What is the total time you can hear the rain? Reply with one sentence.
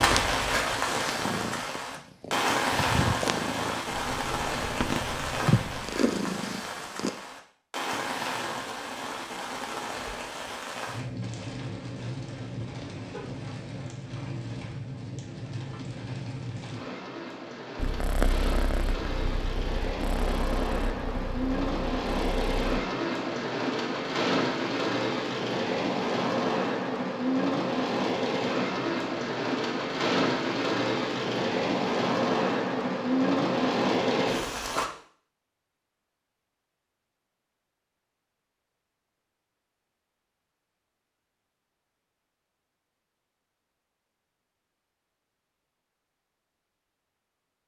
The rain can be heard for 35 seconds in total.